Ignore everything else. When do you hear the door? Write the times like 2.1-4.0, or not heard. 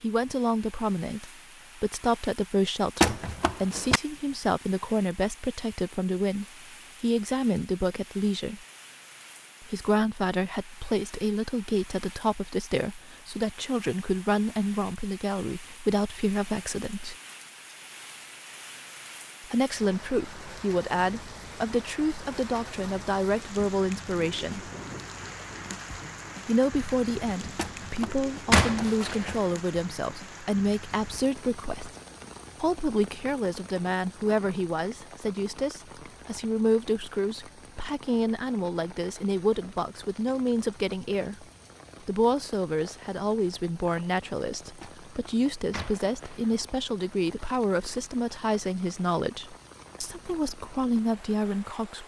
3.0-4.0, 27.6-29.4, 44.8-46.6.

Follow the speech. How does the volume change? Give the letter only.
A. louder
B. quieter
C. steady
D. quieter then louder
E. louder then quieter
C.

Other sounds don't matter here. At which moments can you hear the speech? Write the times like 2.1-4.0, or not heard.
0.0-8.7, 9.6-17.1, 19.4-24.7, 26.4-31.9, 32.6-41.5, 42.0-52.0.